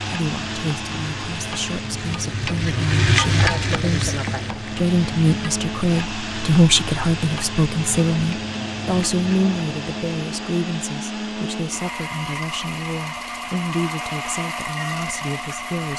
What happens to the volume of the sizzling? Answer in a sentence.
The loudness of the sizzling goes up, then down.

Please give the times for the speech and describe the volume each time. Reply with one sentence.
The speech can be heard from 0.0 to 15.9 s, getting louder then quieter.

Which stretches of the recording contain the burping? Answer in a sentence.
You can't hear the burping here.